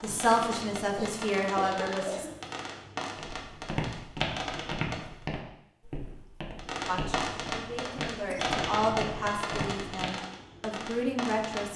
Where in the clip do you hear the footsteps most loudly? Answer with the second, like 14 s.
4 s.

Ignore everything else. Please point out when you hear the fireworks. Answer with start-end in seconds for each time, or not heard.
0.0-5.2, 6.5-11.7.